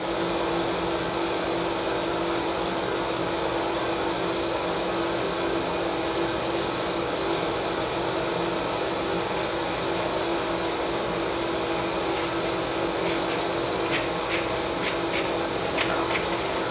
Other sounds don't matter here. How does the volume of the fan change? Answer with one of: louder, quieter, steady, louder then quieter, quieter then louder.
steady.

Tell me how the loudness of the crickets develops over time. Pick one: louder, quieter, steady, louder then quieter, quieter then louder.
quieter then louder.